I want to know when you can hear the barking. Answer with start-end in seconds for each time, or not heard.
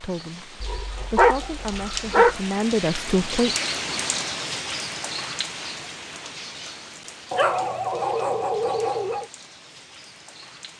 0.6-2.4, 7.3-9.2.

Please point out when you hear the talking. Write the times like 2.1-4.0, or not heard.
0.0-3.5.